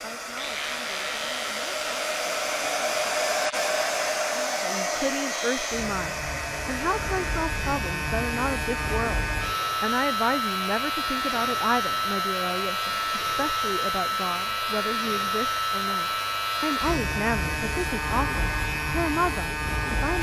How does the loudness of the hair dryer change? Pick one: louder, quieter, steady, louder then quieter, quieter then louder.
quieter.